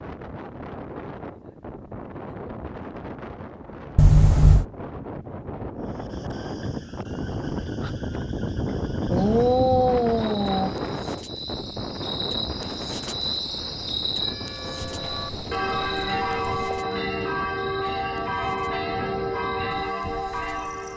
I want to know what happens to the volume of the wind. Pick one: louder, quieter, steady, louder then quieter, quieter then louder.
louder then quieter.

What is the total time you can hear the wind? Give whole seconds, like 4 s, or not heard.
21 s.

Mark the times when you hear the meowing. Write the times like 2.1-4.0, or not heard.
4.0-4.7, 9.1-10.8, 14.8-16.8.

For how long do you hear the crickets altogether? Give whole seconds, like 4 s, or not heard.
15 s.